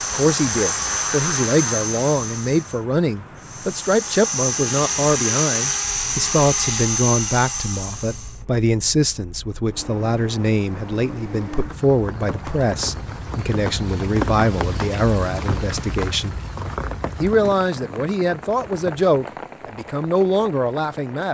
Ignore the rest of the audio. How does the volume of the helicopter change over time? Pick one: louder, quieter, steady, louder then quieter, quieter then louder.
quieter then louder.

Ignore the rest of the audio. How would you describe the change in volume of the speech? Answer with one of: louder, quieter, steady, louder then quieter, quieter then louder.
steady.